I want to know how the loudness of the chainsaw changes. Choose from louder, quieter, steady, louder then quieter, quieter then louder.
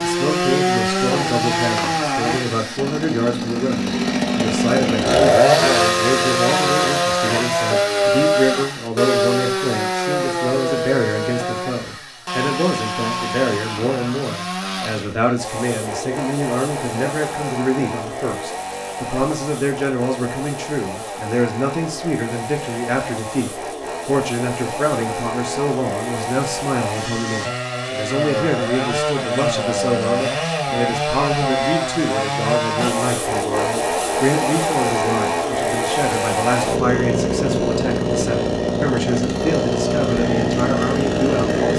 quieter then louder.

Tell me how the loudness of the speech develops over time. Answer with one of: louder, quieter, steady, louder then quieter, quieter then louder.
steady.